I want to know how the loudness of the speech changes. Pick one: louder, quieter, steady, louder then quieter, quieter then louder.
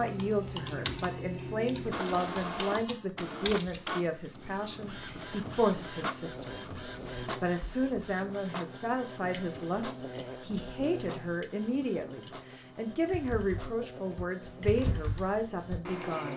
steady.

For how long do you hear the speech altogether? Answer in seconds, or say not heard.
16 s.